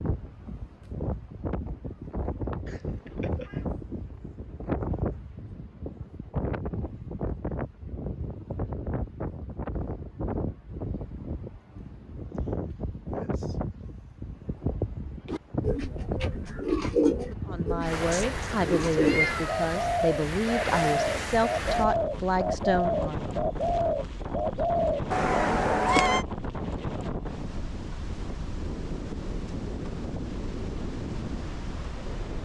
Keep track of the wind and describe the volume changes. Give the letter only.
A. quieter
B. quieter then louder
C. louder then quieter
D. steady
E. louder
D.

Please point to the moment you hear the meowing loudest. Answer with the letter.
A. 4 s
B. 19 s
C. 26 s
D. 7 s
C.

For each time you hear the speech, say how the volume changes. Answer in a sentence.
The speech can be heard from 17.4 to 23.3 s, at a steady volume.